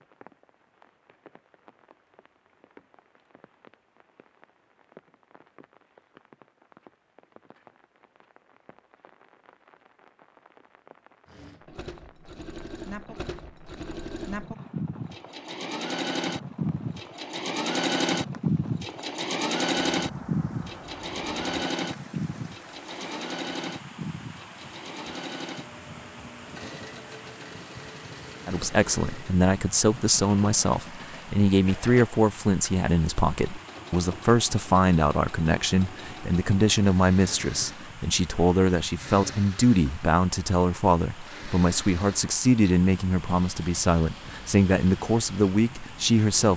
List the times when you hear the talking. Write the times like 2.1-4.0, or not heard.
28.4-46.5.